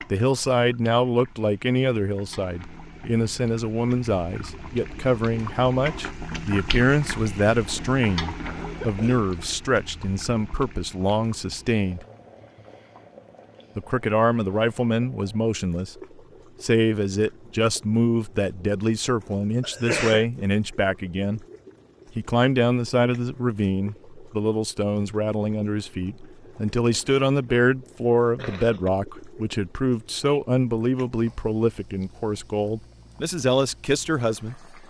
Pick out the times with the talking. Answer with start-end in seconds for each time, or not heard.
0.1-12.1, 13.8-15.9, 16.6-21.4, 22.1-34.6.